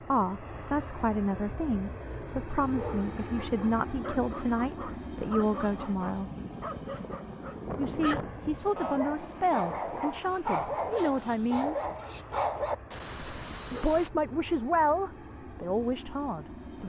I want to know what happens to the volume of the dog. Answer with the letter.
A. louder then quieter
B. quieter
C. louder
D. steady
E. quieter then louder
C.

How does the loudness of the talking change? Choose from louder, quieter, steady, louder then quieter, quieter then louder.
steady.